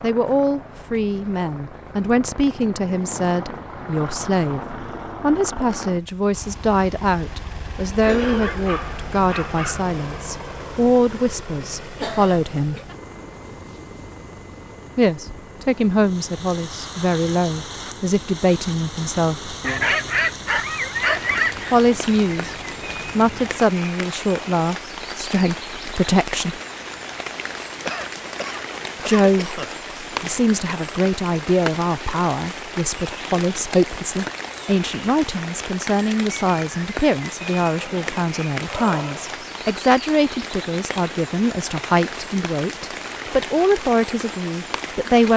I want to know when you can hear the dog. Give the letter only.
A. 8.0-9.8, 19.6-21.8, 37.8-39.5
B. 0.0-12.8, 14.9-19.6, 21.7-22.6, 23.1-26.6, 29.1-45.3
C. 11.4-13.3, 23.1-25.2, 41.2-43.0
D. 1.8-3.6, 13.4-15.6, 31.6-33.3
A.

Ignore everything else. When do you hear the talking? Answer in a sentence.
The talking can be heard from 0.0 to 12.8 s, from 14.9 to 19.6 s, from 21.7 to 22.6 s, from 23.1 to 26.6 s and from 29.1 to 45.3 s.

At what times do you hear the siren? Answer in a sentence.
You can't hear the siren here.